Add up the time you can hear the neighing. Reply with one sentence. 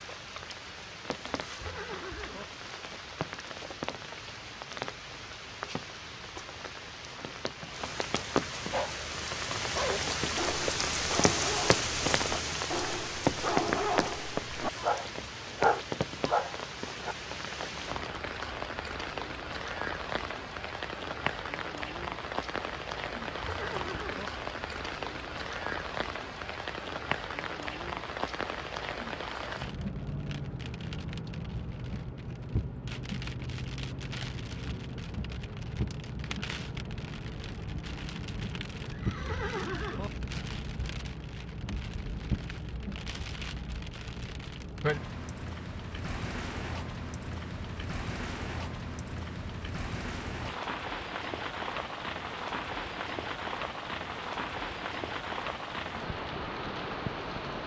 You can hear the neighing for 3 seconds altogether.